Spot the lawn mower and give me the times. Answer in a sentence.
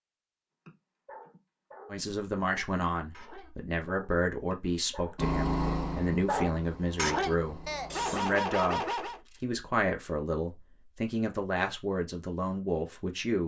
The lawn mower can be heard from 5.2 to 8.2 s.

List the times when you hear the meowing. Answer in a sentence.
You can't hear the meowing here.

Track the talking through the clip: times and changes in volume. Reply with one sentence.
The talking can be heard from 1.9 to 13.4 s, at a steady volume.